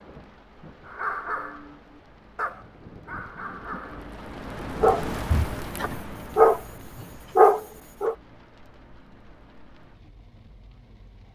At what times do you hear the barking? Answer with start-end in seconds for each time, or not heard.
0.8-6.6, 7.3-8.2.